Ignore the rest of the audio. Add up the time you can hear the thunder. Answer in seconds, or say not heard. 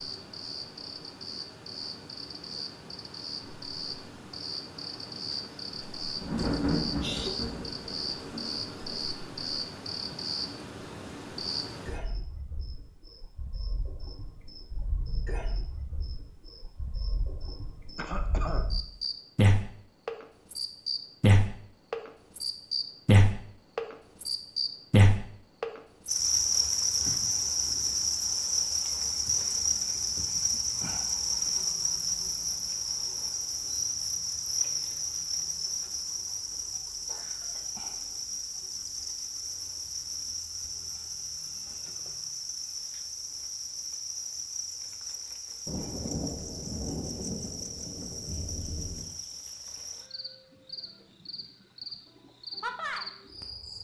6 s.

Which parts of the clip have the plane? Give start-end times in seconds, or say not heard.
not heard.